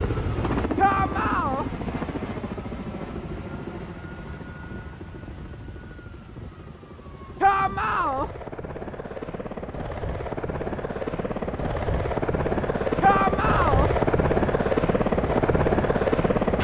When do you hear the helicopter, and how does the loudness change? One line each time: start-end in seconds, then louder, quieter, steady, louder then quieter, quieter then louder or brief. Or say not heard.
0.0-16.5 quieter then louder.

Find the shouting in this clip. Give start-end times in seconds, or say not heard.
0.8-1.6, 7.4-8.3, 13.0-13.9.